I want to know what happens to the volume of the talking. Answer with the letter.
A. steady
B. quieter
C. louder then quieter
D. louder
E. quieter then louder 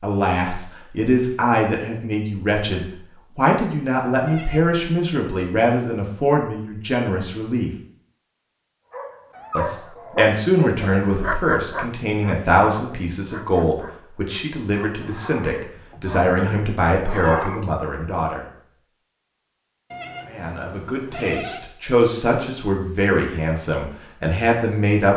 A.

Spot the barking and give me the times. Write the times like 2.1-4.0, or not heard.
8.9-17.7.